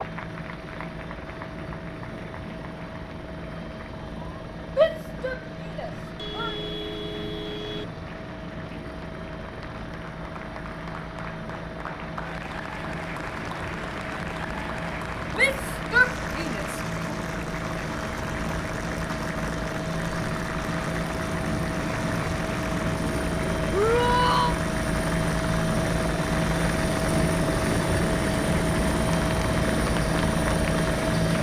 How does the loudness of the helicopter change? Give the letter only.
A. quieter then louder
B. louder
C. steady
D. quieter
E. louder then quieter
B.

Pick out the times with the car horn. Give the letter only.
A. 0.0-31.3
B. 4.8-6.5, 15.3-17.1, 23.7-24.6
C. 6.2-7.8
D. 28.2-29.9
C.